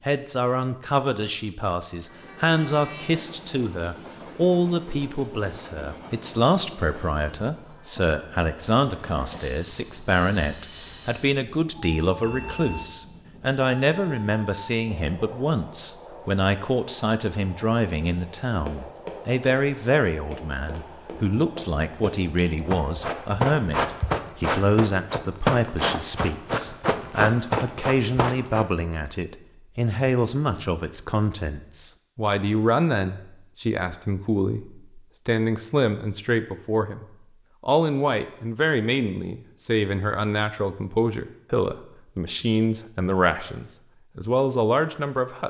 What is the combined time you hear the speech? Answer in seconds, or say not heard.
45 s.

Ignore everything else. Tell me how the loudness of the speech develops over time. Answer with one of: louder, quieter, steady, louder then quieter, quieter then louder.
steady.